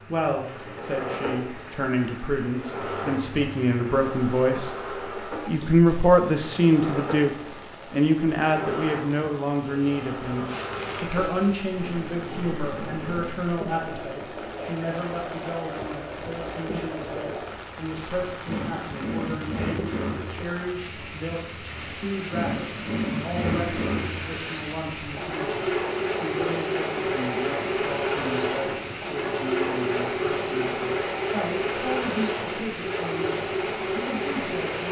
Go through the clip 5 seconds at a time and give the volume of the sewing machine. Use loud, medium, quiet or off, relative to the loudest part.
medium, medium, medium, medium, loud, loud, loud.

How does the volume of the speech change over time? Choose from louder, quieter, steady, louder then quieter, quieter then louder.
quieter.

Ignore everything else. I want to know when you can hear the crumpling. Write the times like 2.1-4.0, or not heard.
10.4-11.3.